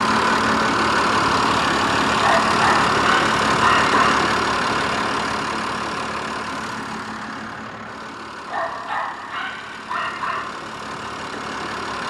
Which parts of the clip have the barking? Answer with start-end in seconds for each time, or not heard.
2.1-4.2, 8.4-10.5.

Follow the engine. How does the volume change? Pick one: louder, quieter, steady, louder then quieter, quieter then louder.
quieter.